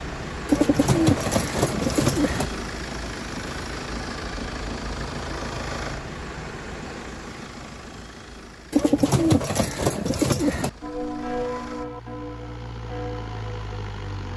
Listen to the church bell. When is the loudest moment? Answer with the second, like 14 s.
11 s.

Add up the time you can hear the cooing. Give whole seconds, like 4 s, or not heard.
4 s.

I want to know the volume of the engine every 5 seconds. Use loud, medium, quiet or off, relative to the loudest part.
loud, loud, medium.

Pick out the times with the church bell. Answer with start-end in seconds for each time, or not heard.
10.8-14.3.